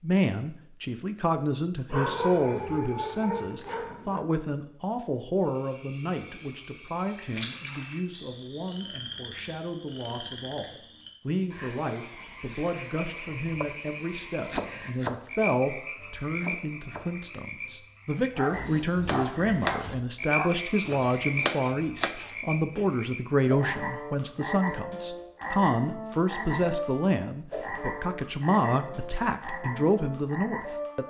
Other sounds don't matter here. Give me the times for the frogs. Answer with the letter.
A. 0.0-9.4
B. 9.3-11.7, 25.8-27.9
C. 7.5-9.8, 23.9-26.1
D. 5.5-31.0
D.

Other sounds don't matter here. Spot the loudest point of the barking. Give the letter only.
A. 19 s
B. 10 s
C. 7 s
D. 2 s
D.